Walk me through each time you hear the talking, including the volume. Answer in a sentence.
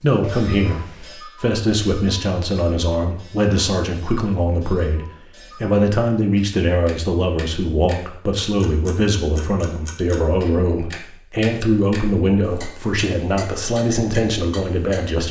The talking can be heard from 0.0 to 15.2 s, at a steady volume.